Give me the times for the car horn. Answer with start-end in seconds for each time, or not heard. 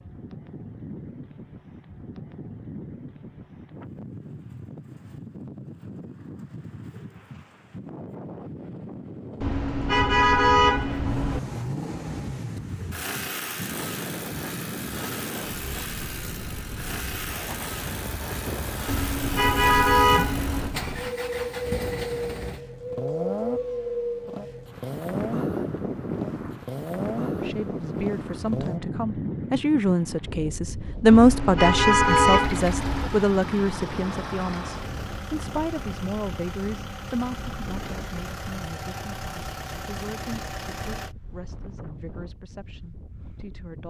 9.4-11.4, 18.9-20.8, 31.1-33.1.